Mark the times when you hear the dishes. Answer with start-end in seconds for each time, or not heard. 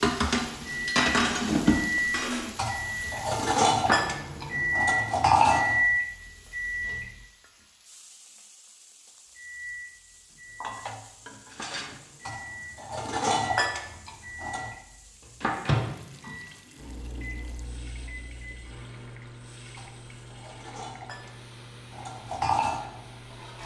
0.0-5.8, 10.6-14.8, 19.8-23.6.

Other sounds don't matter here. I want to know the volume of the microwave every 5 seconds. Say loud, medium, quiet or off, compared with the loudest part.
loud, loud, quiet, medium, quiet.